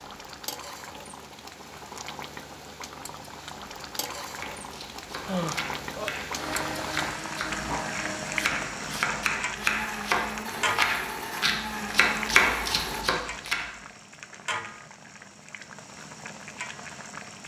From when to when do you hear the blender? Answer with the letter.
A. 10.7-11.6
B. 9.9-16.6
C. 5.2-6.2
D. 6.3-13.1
D.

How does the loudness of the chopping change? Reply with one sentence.
The volume of the chopping goes up.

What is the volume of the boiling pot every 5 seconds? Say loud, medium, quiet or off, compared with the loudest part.
medium, loud, loud, medium.